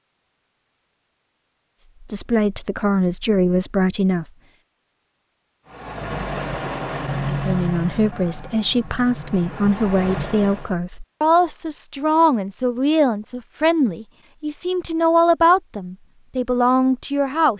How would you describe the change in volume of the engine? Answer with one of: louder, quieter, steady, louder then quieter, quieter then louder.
quieter then louder.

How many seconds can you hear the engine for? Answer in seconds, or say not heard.
5 s.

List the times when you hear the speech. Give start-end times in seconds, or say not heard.
2.0-4.2, 7.2-17.5.